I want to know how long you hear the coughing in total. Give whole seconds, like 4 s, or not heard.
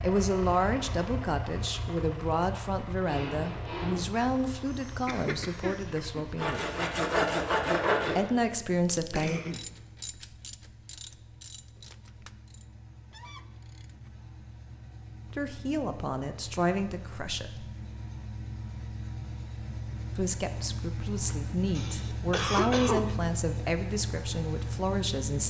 4 s.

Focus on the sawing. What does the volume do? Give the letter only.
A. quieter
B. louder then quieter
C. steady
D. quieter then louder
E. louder
D.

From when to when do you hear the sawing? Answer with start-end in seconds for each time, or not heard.
3.0-8.2.